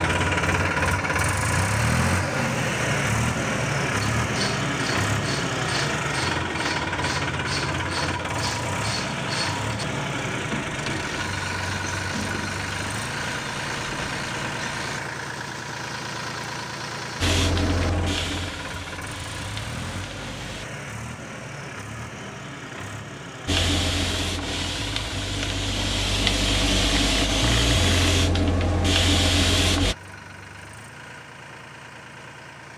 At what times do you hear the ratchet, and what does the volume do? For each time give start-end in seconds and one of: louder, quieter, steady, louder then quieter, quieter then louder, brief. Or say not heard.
4.2-15.0 steady.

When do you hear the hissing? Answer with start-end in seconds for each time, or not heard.
17.2-20.6, 23.4-29.9.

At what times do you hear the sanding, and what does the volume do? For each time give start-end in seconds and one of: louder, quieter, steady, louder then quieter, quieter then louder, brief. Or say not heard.
not heard.